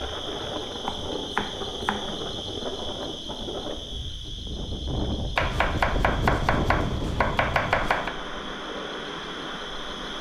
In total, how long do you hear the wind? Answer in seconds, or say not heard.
10 s.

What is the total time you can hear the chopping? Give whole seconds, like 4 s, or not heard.
4 s.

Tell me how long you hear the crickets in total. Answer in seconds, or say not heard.
10 s.